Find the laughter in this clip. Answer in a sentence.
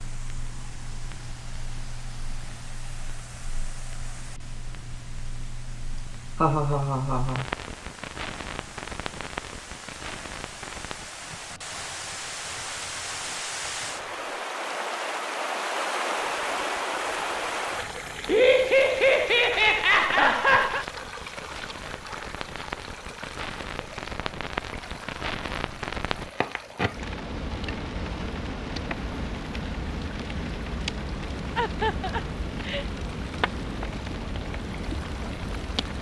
You can hear the laughter from 6.4 to 7.5 s, from 18.2 to 20.9 s and from 31.6 to 32.9 s.